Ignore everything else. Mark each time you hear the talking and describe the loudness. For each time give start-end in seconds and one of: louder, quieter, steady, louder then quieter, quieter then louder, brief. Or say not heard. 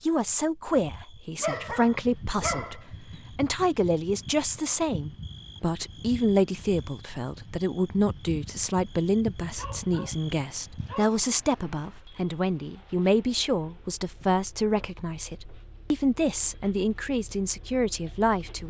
0.0-18.6 steady.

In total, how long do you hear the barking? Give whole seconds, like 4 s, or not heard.
3 s.